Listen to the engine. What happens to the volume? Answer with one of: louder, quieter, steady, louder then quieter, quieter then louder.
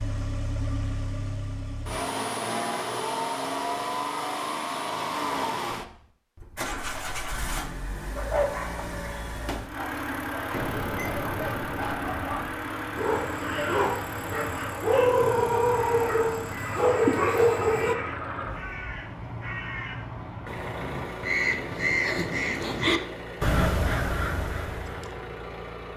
quieter.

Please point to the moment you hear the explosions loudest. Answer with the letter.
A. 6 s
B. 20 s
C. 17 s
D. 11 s
D.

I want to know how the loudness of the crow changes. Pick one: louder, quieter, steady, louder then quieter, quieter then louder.
louder.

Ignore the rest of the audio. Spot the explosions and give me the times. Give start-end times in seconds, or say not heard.
10.5-12.6.